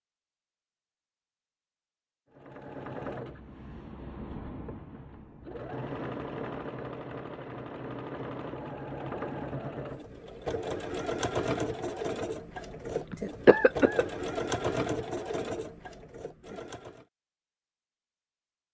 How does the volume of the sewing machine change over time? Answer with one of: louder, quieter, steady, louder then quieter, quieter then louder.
louder.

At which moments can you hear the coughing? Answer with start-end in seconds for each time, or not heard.
13.1-14.1.